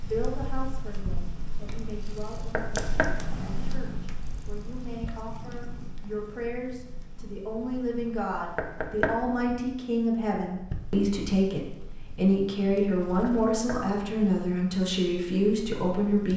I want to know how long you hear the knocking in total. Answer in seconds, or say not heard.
2 s.